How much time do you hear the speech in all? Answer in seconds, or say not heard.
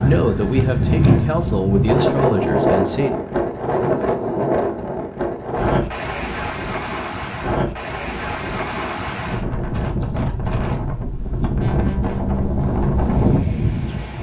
3 s.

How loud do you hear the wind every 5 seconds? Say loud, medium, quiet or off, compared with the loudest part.
loud, medium, loud.